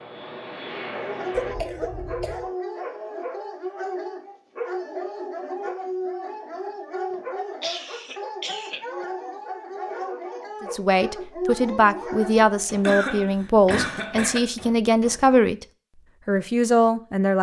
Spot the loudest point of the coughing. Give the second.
13 s.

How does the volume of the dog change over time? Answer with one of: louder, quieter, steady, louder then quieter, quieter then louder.
steady.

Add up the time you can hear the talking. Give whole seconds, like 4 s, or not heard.
6 s.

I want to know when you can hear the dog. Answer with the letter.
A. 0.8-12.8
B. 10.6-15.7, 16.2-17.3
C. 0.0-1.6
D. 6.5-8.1
A.